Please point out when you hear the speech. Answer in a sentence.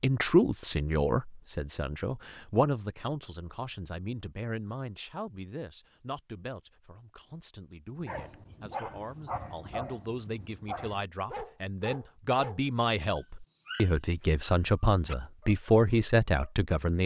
The speech can be heard from 0.0 to 17.0 s.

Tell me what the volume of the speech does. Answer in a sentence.
The volume of the speech goes down, then up.